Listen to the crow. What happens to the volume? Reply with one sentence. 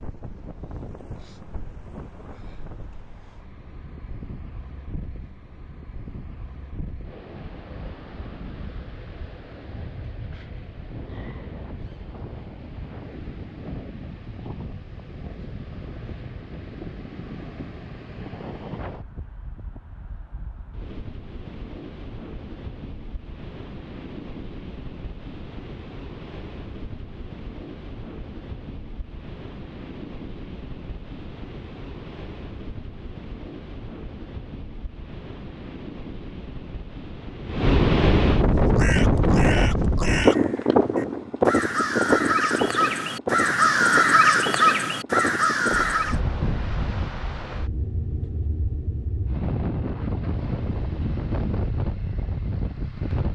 The loudness of the crow goes up.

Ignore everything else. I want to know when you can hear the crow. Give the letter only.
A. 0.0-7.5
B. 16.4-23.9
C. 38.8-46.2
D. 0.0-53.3
C.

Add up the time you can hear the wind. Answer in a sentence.
You can hear the wind for 53 seconds altogether.